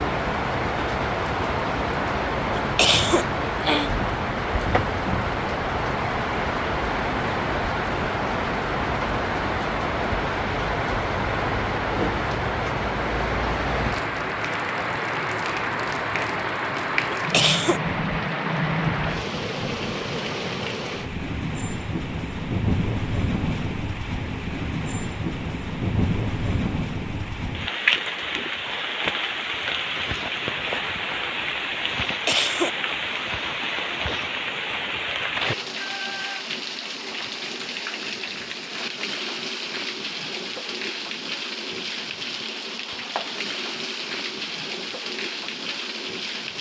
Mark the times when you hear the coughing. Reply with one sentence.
The coughing can be heard from 2.5 to 3.9 s, from 17.1 to 17.8 s and from 32.0 to 32.8 s.